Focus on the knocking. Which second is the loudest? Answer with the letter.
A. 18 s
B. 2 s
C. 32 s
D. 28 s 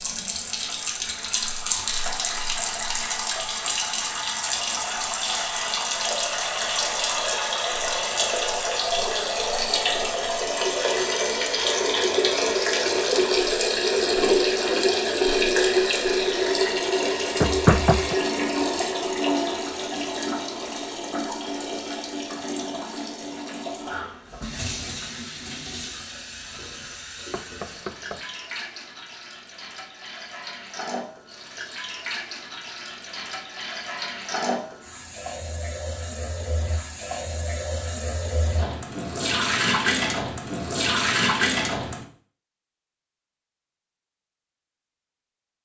A.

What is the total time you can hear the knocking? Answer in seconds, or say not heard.
2 s.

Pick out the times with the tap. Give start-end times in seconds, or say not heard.
0.0-42.0.